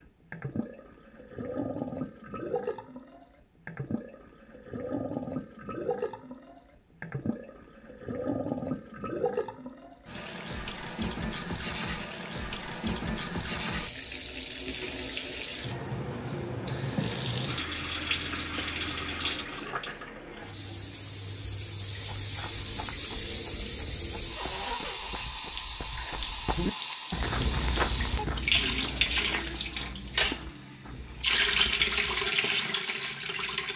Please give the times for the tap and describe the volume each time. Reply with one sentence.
You can hear the tap from 0.0 to 33.7 s, getting louder.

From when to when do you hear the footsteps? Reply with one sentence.
The footsteps can be heard from 21.9 to 32.3 s.